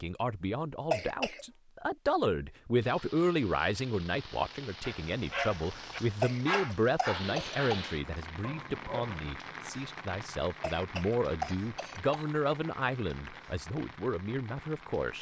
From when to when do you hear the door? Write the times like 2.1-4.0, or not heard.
not heard.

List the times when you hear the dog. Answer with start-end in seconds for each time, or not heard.
4.8-9.3.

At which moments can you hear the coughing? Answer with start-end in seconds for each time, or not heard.
0.9-1.4, 6.2-7.8, 10.6-12.2.